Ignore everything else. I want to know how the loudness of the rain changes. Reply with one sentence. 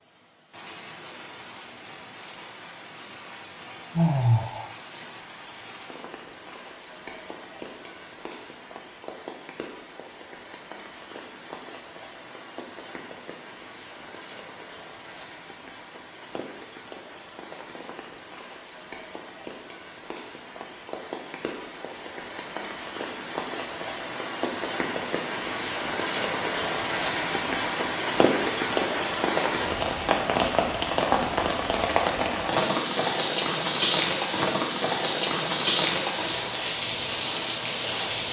The volume of the rain goes up.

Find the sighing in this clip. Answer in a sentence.
You can hear the sighing from 4.0 to 4.7 s.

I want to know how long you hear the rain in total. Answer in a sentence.
The rain can be heard for 38 seconds in total.